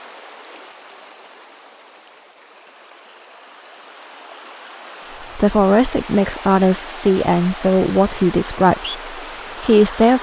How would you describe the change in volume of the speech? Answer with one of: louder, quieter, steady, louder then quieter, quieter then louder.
quieter.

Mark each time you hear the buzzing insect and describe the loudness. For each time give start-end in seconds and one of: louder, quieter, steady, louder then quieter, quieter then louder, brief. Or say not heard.
not heard.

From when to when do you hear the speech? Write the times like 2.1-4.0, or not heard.
5.3-10.1.